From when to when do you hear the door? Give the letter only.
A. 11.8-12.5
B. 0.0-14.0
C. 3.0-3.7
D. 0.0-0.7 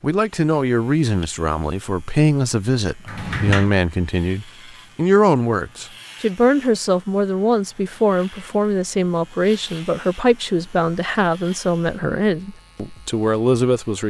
C.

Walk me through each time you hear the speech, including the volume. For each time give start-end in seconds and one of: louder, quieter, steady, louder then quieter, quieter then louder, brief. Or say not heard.
0.0-14.0 steady.